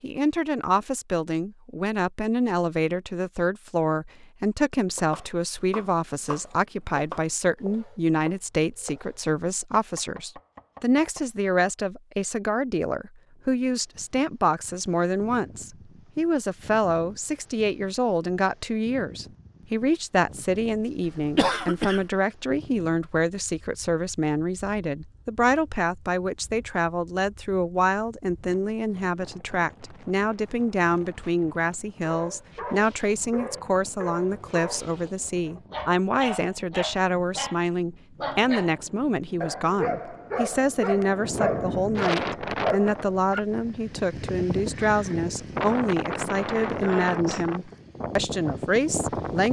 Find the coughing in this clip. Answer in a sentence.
The coughing can be heard from 21.1 to 22.1 s.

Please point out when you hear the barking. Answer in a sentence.
You can hear the barking from 32.0 to 43.4 s.